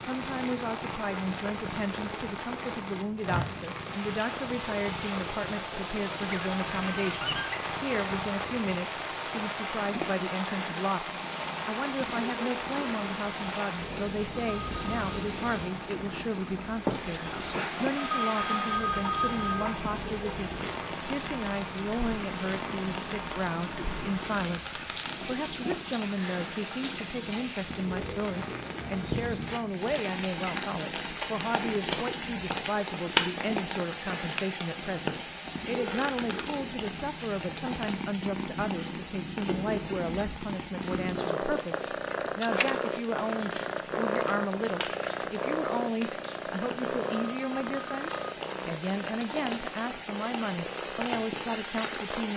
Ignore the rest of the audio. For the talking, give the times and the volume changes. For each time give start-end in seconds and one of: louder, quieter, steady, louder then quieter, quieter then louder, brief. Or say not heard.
0.0-52.3 steady.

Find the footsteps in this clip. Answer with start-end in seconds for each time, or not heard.
not heard.